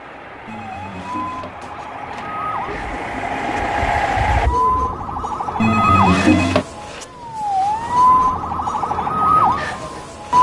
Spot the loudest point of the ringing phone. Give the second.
6 s.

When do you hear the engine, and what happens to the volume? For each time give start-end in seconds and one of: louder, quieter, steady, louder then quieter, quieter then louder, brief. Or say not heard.
0.0-4.5 louder.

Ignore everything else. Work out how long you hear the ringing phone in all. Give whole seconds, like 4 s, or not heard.
3 s.